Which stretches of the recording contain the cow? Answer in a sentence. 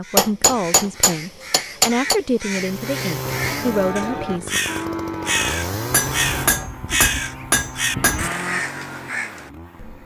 The cow can be heard from 3.2 to 8.7 s.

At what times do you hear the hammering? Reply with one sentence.
You can hear the hammering from 0.1 to 2.2 s and from 5.9 to 8.3 s.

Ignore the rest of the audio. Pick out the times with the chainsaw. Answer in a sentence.
The chainsaw can be heard from 2.5 to 10.0 s.